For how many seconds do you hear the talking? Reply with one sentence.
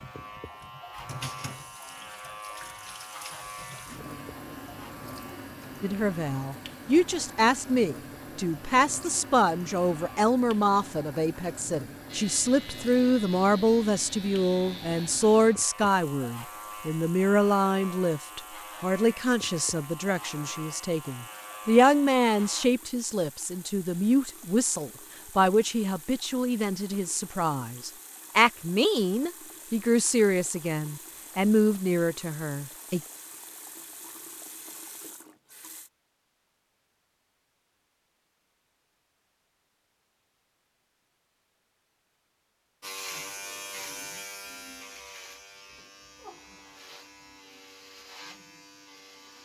You can hear the talking for 27 seconds altogether.